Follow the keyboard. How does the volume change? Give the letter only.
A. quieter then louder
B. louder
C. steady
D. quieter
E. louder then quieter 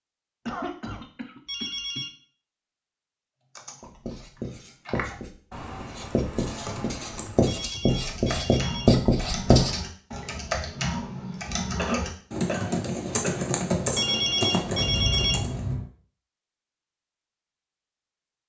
B.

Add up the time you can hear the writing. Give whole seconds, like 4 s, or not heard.
6 s.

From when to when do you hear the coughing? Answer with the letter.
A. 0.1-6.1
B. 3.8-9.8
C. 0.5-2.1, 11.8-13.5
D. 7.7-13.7
C.